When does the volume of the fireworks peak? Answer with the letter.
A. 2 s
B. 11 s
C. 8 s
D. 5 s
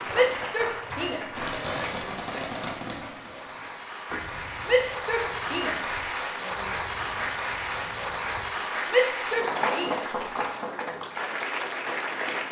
A.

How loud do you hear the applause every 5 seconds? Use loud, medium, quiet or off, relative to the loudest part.
medium, loud, loud.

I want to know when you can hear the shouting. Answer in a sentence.
You can hear the shouting from 0.1 to 2.1 s, from 4.7 to 6.7 s and from 8.8 to 10.2 s.